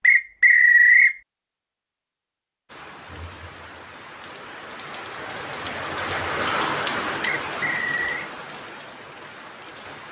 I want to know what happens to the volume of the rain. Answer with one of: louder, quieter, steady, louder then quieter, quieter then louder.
louder then quieter.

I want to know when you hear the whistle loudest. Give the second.
1 s.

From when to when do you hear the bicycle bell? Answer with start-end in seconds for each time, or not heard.
not heard.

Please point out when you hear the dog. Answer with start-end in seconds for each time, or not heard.
not heard.